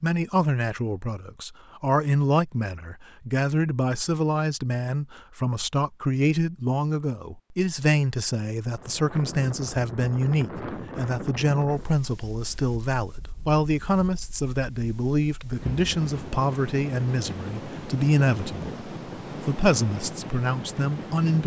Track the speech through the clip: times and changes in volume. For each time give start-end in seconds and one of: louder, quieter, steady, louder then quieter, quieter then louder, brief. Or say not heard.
0.0-21.4 steady.